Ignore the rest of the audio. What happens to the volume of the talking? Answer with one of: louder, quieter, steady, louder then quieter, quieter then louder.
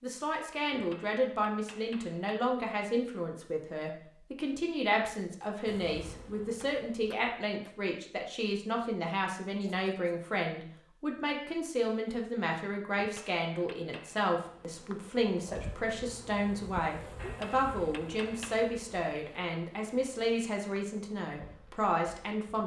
steady.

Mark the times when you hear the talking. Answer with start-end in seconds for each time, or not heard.
0.0-22.6.